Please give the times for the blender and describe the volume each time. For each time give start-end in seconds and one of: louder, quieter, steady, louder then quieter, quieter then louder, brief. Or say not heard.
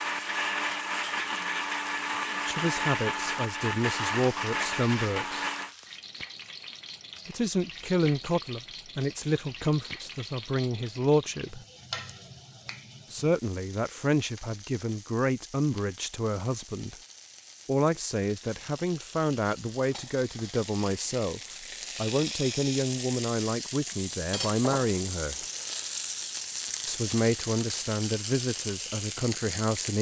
0.0-5.8 steady.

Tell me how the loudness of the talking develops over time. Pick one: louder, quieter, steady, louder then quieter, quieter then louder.
steady.